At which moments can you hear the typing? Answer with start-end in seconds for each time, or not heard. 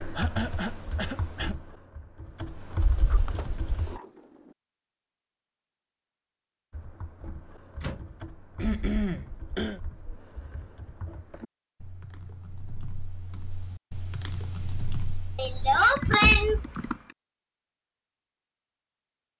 0.0-4.0, 6.7-17.1.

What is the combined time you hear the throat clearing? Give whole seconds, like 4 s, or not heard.
4 s.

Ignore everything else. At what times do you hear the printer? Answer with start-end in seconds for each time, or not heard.
not heard.